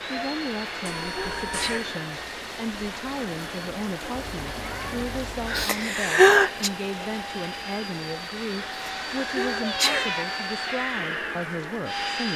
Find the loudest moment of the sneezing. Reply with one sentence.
The loudest moment of the sneezing is at 6 seconds.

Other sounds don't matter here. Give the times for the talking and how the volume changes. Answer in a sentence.
You can hear the talking from 0.0 to 12.3 s, at a steady volume.